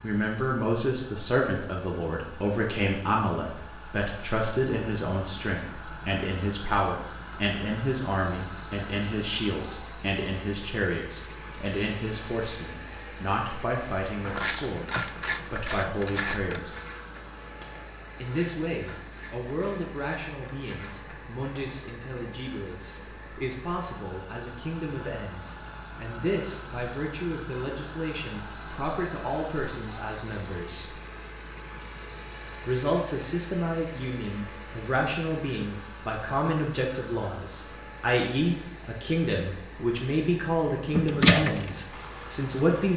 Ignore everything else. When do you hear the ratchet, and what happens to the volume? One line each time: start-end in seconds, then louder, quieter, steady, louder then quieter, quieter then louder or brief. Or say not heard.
14.2-21.8 quieter
40.9-42.9 brief.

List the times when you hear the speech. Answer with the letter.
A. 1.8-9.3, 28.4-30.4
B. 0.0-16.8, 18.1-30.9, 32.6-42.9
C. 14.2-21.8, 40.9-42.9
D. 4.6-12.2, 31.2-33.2
B.